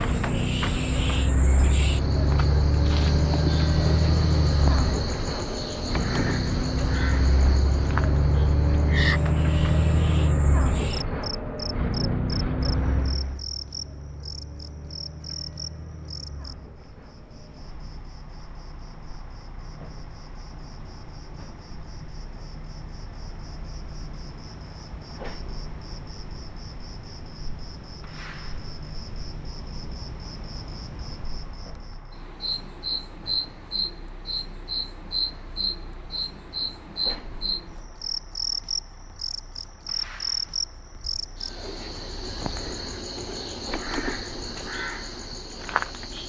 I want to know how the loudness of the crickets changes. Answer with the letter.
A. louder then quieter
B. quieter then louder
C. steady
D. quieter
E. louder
B.